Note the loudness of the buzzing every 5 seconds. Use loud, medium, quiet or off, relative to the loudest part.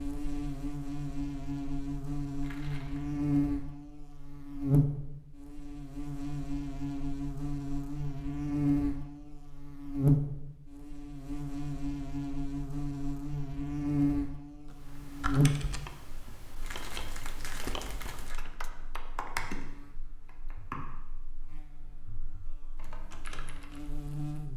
loud, loud, loud, loud, quiet.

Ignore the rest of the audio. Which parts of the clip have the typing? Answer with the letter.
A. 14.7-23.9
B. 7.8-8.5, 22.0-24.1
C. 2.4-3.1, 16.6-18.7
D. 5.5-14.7
A.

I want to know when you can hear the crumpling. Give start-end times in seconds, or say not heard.
2.4-3.1, 16.6-18.7.